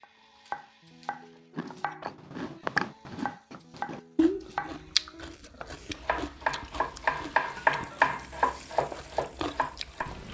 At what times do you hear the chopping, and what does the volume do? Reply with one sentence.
You can hear the chopping from 0.0 to 10.2 s, getting louder.